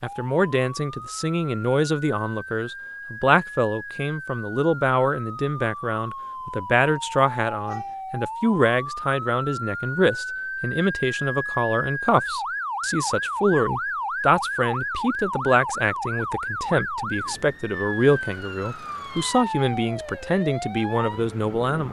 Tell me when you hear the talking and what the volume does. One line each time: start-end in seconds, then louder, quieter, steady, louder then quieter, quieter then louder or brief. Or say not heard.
0.0-21.8 steady.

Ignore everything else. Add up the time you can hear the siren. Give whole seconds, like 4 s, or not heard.
22 s.